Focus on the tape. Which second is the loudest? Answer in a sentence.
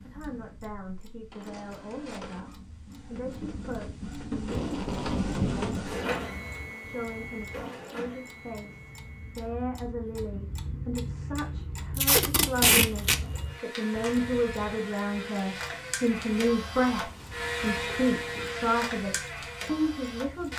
The loudest moment of the tape is at 13 seconds.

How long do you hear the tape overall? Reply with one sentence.
The tape can be heard for 3 seconds in total.